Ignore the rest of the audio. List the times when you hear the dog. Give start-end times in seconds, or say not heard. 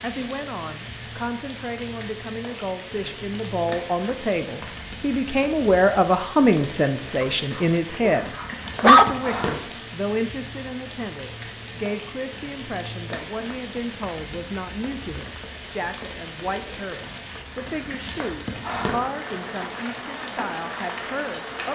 7.2-9.1.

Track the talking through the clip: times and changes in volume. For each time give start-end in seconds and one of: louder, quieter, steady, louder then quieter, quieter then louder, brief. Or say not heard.
0.0-21.6 louder then quieter.